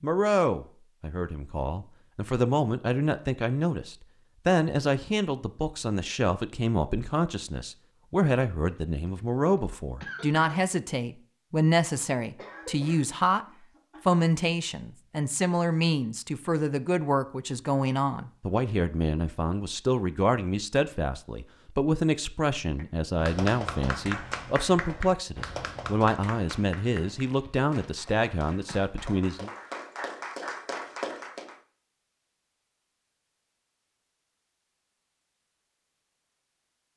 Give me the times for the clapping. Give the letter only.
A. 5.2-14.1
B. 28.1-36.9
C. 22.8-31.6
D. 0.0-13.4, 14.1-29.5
C.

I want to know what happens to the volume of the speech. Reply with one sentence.
The loudness of the speech stays about the same.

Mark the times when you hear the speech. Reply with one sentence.
The speech can be heard from 0.0 to 13.4 s and from 14.1 to 29.5 s.